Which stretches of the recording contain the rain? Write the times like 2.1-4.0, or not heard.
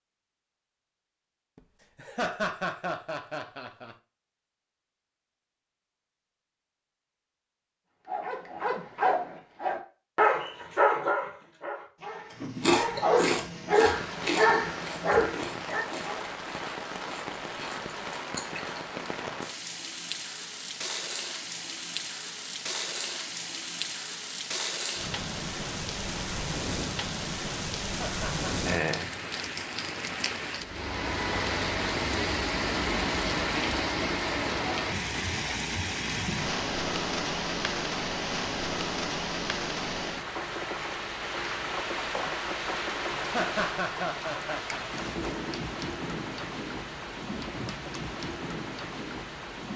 13.8-49.7.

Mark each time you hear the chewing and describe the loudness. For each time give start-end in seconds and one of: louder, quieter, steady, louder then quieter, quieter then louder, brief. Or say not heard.
12.4-18.8 quieter then louder.